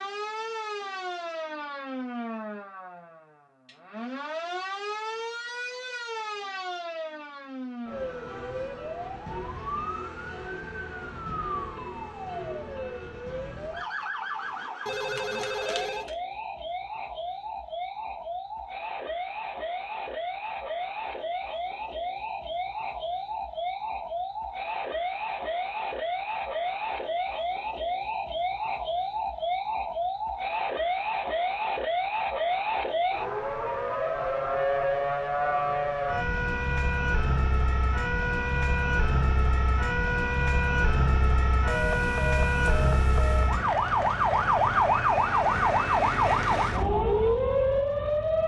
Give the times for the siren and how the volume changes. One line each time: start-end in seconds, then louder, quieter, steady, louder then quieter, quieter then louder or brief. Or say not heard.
0.0-48.4 louder.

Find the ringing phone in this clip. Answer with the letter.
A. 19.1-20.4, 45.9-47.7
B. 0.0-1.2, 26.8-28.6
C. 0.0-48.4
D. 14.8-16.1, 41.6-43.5
D.